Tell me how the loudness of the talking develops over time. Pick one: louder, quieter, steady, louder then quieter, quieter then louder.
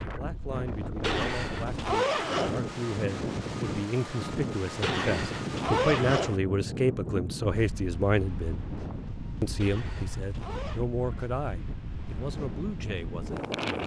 louder then quieter.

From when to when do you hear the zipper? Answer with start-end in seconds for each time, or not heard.
1.0-2.6, 4.8-6.4, 9.6-10.8.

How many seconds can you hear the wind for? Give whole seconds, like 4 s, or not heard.
14 s.